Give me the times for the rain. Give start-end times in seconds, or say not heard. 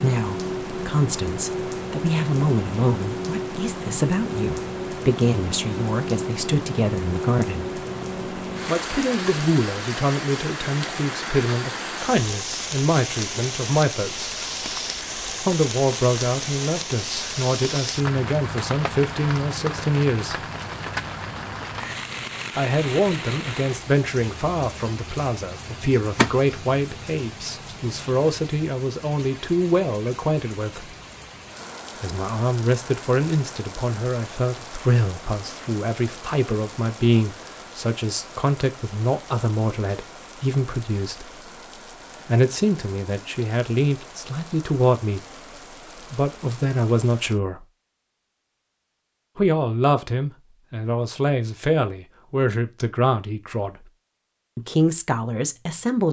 0.0-47.4.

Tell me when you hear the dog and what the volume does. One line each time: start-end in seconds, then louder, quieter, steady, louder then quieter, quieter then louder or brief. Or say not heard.
not heard.